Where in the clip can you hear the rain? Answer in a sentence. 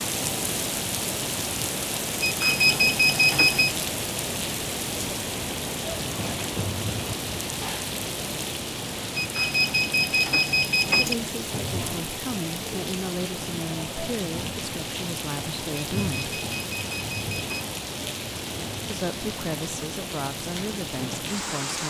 You can hear the rain from 0.0 to 21.8 s.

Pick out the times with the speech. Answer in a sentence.
The speech can be heard from 10.9 to 16.4 s and from 18.9 to 21.8 s.